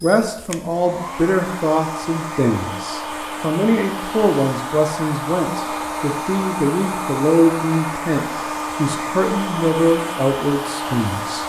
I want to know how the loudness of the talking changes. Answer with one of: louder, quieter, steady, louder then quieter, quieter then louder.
steady.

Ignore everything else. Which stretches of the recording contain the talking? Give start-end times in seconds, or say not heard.
0.0-11.4.